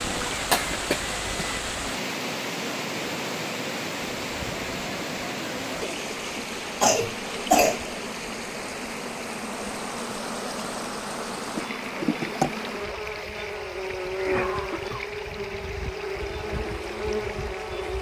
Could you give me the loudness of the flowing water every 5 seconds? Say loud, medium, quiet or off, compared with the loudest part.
loud, loud, medium, medium.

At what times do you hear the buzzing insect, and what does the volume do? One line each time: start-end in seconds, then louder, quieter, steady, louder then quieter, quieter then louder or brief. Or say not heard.
0.0-17.9 louder.